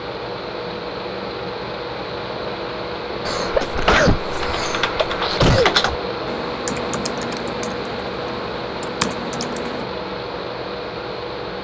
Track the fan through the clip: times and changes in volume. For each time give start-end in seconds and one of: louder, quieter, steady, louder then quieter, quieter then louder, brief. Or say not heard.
0.0-11.5 steady.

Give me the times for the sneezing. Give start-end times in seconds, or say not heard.
3.2-5.8.